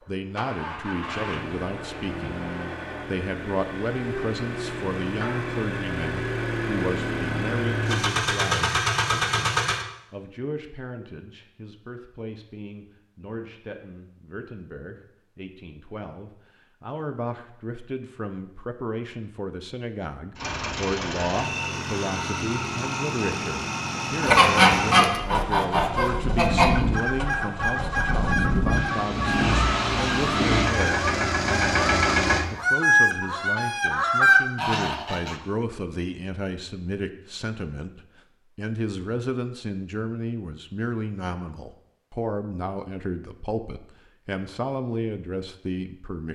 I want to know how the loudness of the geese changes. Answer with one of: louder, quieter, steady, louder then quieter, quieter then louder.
quieter then louder.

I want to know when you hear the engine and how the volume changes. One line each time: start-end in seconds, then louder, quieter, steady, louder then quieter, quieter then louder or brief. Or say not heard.
0.0-9.8 louder
20.4-32.5 louder.